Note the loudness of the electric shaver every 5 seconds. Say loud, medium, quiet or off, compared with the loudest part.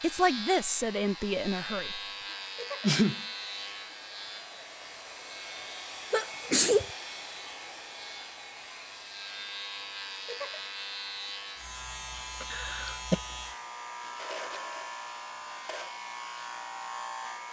loud, medium, loud, loud.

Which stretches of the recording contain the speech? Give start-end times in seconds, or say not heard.
0.0-2.0.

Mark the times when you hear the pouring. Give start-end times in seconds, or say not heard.
not heard.